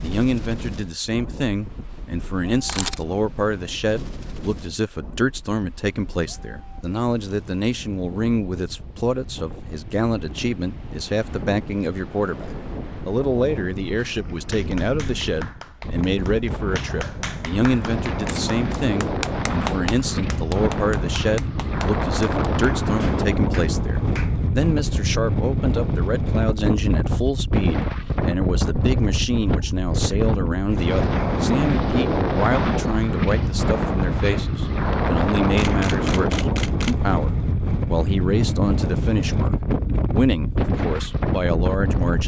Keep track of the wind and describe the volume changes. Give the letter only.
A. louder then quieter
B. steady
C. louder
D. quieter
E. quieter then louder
C.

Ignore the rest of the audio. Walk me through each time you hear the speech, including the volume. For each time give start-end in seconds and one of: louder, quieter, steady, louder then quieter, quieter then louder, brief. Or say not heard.
0.0-42.2 steady.